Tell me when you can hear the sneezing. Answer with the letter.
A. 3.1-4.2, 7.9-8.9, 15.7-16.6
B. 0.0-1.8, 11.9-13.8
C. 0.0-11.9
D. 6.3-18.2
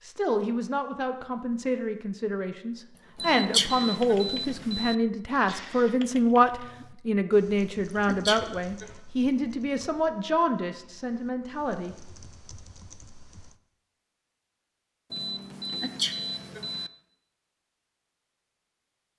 A.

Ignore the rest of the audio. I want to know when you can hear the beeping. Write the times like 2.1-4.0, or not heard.
3.1-5.0, 15.1-16.9.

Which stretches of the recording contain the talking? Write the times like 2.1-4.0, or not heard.
0.0-11.9.